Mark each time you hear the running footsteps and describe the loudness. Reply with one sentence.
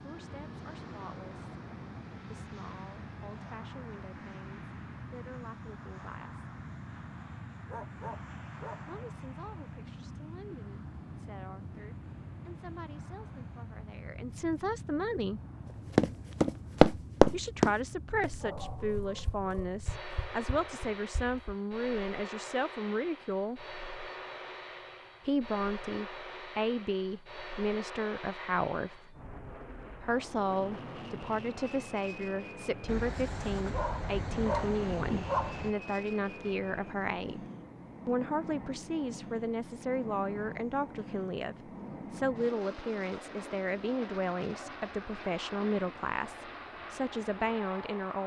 The running footsteps can be heard from 15.9 to 21.6 s, getting quieter.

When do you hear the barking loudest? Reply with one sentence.
The loudest moment of the barking is at 35 seconds.